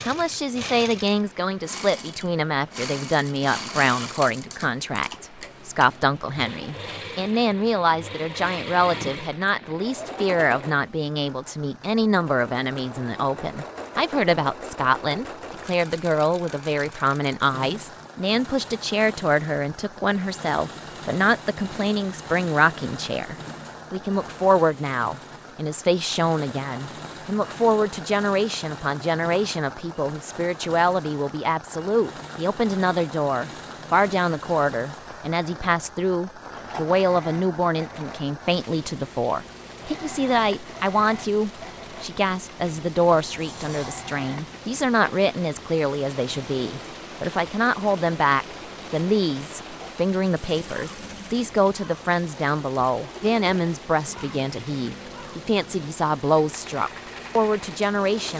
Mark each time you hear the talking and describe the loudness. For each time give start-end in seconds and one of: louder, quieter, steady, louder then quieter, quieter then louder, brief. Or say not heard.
0.1-58.3 steady.